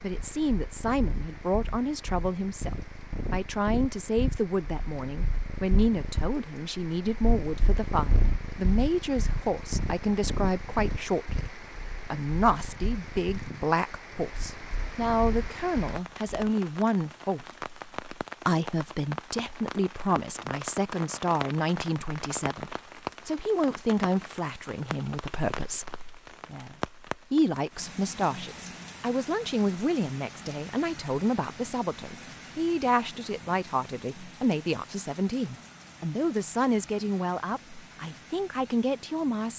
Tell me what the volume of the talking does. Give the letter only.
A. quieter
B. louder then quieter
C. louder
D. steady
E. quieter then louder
D.